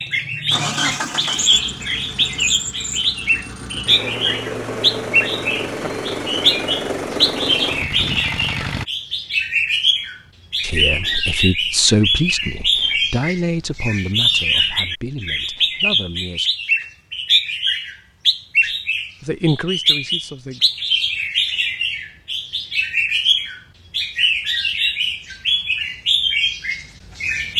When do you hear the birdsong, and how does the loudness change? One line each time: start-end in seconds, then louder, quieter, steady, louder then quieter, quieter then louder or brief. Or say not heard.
0.0-27.5 steady.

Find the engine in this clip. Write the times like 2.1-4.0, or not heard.
0.0-8.8.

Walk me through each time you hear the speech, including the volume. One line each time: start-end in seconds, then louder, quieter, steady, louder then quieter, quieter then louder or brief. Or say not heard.
10.6-16.5 quieter
18.6-20.6 brief.